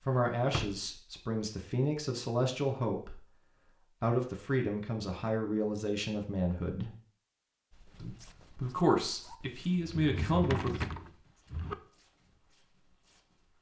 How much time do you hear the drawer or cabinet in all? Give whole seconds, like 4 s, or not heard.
3 s.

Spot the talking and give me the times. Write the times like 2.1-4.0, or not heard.
0.0-6.9, 8.0-10.8.